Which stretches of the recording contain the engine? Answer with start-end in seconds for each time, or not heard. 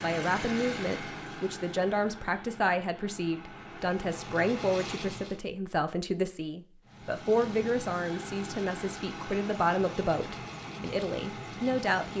0.0-5.4, 6.8-12.1.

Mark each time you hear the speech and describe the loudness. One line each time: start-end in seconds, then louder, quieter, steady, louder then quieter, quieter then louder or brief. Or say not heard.
0.0-12.1 steady.